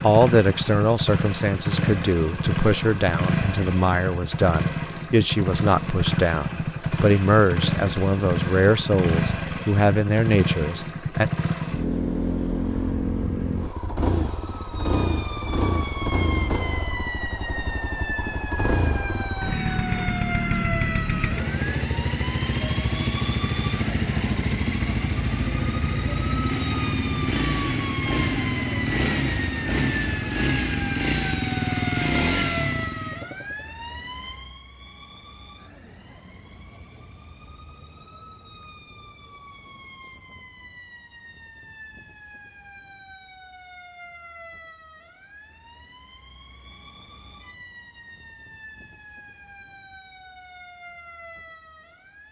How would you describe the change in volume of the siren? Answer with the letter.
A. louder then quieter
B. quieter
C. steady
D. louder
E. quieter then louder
B.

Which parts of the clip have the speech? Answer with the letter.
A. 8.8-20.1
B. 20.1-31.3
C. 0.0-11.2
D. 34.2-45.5
C.